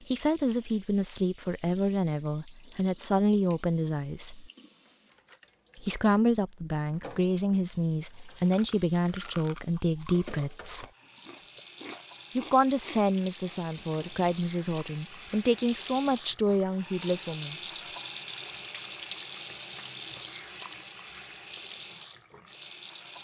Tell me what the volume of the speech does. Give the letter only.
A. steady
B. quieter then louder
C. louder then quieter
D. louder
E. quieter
A.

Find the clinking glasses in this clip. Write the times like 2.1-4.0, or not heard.
not heard.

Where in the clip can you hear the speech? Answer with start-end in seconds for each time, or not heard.
0.1-4.5, 5.8-10.8, 12.3-17.6.